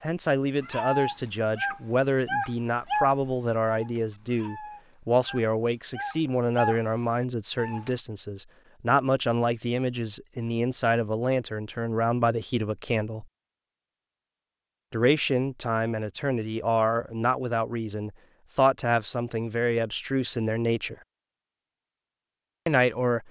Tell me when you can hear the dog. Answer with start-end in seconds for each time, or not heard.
0.6-8.0.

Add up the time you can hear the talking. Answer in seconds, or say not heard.
20 s.